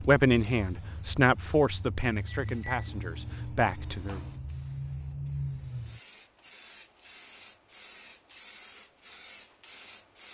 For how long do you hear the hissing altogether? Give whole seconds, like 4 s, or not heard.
10 s.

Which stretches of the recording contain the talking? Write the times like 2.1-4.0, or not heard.
0.1-4.2.